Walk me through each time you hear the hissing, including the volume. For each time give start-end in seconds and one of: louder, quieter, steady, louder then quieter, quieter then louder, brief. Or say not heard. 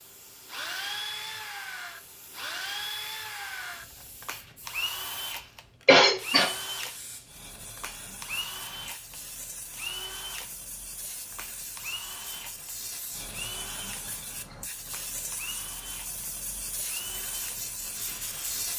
0.0-18.7 louder.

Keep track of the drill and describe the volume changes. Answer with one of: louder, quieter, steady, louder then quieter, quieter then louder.
quieter.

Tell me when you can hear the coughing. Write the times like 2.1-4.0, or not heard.
5.8-6.5.